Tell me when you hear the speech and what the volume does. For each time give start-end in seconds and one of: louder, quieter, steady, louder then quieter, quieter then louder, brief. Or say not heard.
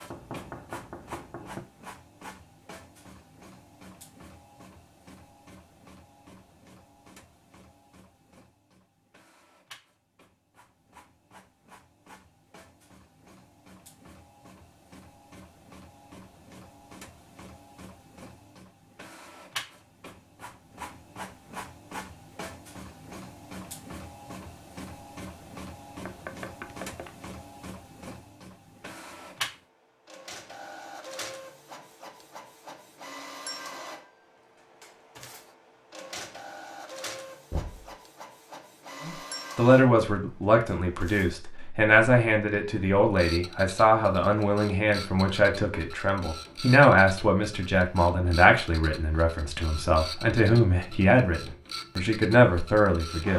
39.0-53.3 steady.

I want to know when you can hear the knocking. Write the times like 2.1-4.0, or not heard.
0.1-1.6, 26.1-27.1, 37.5-38.0.